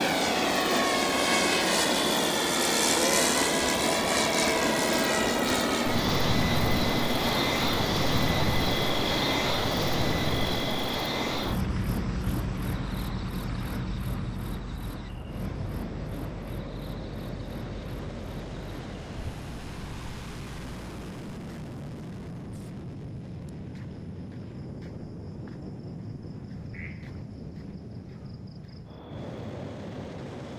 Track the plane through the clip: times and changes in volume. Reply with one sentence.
You can hear the plane from 0.0 to 30.5 s, getting quieter.